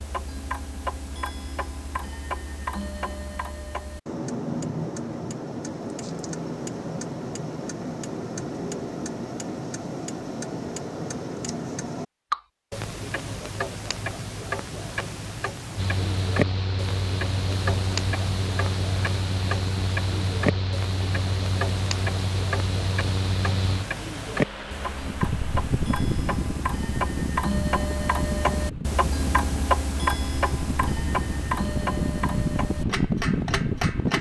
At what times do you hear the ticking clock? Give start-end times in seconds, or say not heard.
0.0-34.1.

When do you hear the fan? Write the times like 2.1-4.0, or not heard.
15.8-34.1.